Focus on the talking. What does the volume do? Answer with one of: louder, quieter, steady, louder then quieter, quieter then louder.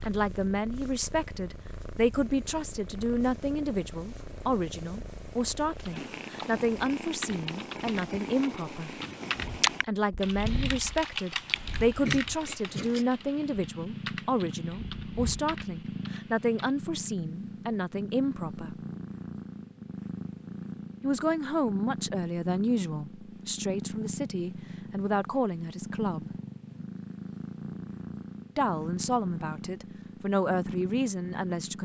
steady.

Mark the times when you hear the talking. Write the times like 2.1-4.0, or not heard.
0.0-8.9, 9.8-18.8, 21.0-26.3, 28.6-31.8.